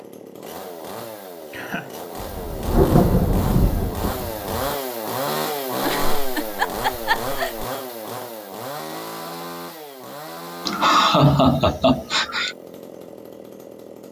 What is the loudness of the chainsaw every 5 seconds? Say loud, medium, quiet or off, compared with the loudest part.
loud, loud, medium.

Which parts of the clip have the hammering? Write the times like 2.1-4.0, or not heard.
not heard.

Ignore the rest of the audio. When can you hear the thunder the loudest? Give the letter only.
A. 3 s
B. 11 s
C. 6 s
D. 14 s
A.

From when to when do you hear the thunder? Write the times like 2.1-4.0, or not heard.
2.2-4.8.